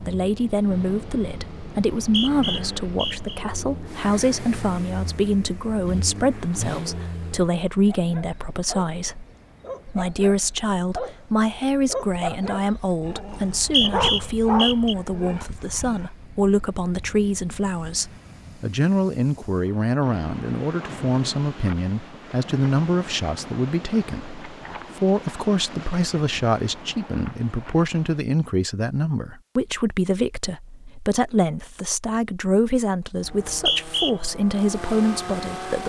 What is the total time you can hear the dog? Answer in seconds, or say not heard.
8 s.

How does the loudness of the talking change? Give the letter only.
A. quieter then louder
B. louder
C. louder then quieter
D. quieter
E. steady
E.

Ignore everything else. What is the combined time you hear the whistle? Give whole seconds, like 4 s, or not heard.
4 s.